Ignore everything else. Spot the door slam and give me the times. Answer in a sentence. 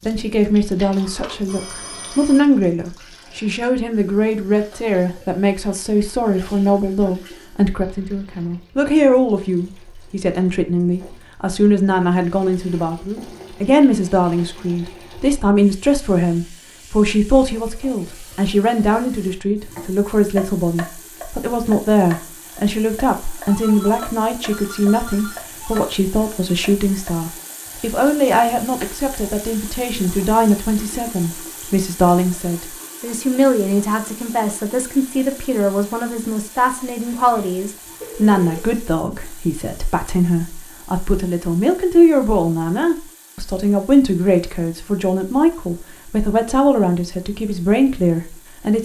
You can't hear the door slam here.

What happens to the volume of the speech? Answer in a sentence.
The volume of the speech stays about the same.